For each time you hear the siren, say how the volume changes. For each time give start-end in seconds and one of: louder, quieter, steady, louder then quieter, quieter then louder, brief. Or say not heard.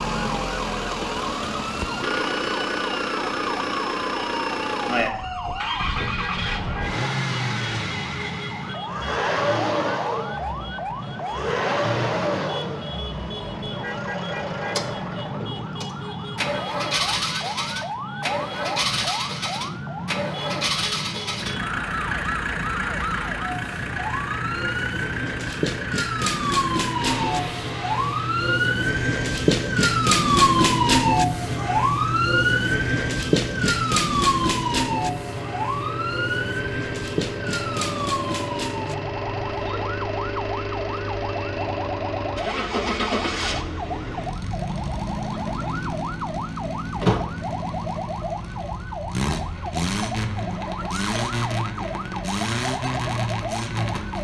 0.0-54.1 louder then quieter.